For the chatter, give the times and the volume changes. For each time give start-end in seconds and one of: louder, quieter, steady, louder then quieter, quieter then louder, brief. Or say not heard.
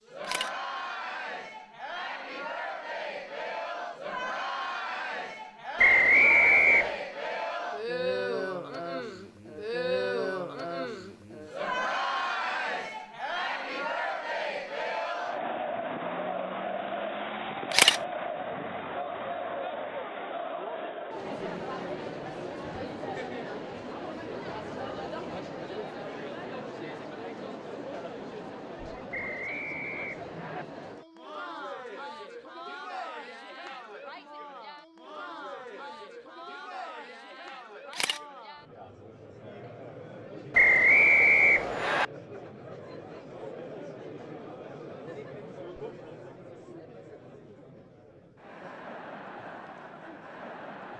0.0-50.9 quieter.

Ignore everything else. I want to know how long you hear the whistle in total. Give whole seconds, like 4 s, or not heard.
4 s.